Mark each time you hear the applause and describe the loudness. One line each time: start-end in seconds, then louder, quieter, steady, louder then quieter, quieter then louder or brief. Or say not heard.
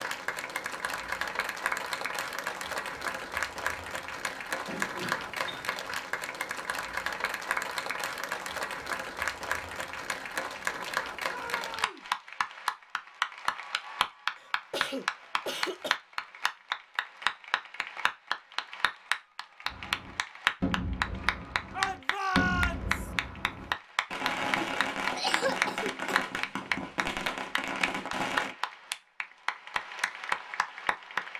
0.0-31.3 steady.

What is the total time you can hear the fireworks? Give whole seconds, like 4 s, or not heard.
9 s.